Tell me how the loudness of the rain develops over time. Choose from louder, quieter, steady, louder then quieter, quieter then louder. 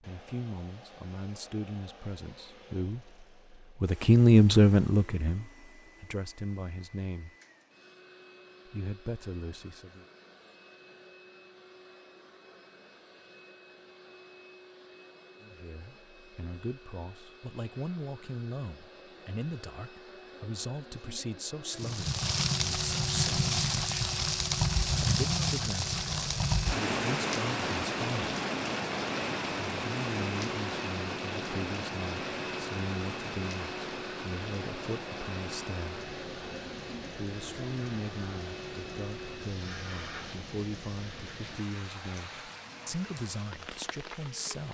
quieter.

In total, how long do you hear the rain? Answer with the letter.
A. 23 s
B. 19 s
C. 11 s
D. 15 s
A.